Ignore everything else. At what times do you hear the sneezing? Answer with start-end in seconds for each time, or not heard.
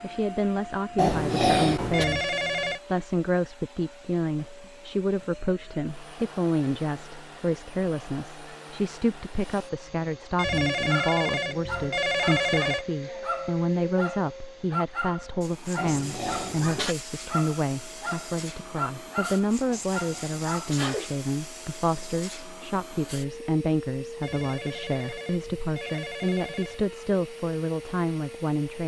0.9-2.0, 15.8-16.9, 19.6-21.1.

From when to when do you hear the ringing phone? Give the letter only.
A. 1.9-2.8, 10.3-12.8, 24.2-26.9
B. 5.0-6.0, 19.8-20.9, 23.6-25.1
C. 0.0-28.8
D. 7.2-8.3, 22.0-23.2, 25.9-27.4
A.